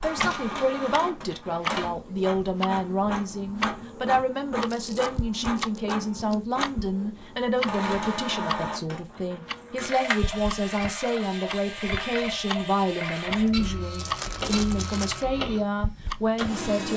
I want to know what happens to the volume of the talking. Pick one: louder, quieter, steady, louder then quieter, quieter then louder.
steady.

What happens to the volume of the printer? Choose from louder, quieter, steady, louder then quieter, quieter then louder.
steady.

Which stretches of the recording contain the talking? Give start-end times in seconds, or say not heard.
0.0-16.9.